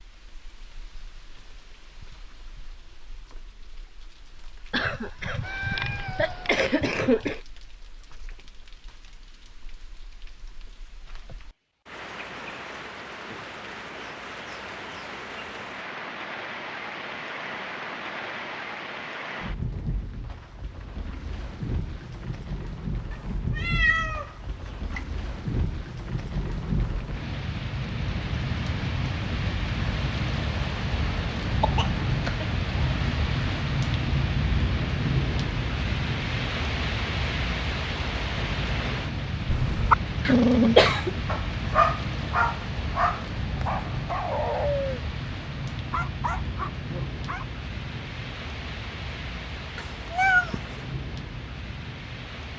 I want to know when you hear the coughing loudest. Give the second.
41 s.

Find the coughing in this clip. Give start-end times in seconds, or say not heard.
4.7-7.4, 31.6-32.5, 40.2-41.1.